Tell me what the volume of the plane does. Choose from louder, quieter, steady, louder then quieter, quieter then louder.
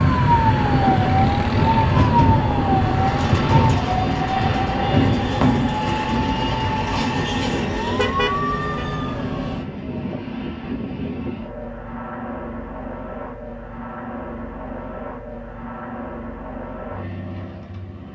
quieter.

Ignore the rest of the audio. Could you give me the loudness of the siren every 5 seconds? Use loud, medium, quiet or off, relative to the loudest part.
loud, medium, off, off.